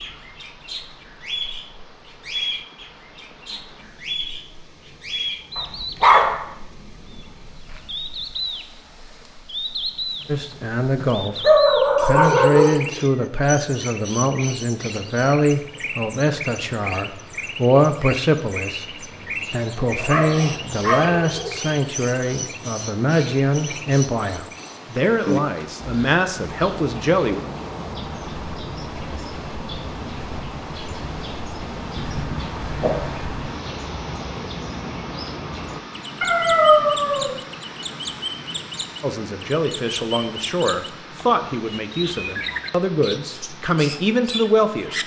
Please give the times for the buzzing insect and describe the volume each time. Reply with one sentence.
You can't hear the buzzing insect here.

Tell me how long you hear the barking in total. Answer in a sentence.
You can hear the barking for 7 seconds altogether.